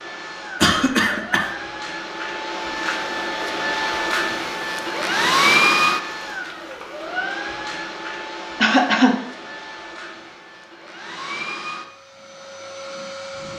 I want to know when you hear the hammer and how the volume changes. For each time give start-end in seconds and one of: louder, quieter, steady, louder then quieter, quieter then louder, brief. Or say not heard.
not heard.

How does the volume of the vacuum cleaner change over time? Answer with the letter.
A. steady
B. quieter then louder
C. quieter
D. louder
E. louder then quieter
E.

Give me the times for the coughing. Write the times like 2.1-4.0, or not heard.
0.6-1.5, 8.6-9.2.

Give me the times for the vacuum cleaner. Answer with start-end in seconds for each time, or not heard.
0.0-13.5.